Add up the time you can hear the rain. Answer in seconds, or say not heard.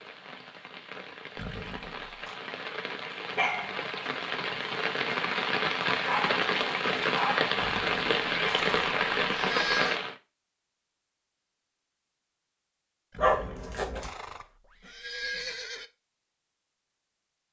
10 s.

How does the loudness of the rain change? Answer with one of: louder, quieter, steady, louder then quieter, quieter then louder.
louder.